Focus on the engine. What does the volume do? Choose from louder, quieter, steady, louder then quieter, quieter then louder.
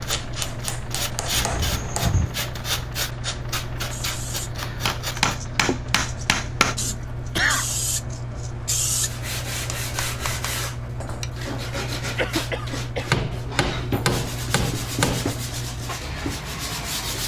steady.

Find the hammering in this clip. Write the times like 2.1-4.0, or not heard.
0.2-2.1, 4.8-6.8, 9.5-11.3, 13.1-15.3.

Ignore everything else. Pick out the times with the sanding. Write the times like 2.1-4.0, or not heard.
0.0-5.4, 9.1-17.2.